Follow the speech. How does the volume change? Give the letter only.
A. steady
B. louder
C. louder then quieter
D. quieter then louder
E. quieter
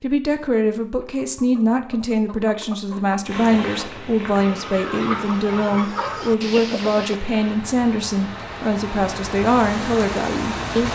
A.